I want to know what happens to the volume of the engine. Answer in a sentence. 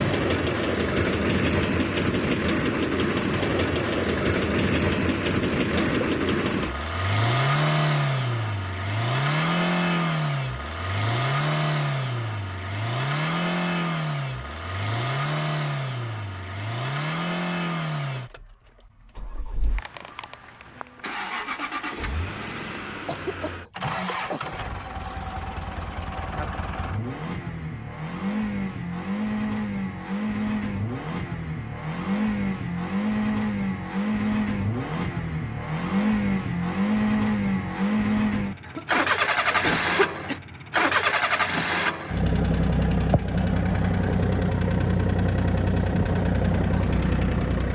The loudness of the engine goes down, then up.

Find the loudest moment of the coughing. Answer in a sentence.
The volume of the coughing peaks at 40 seconds.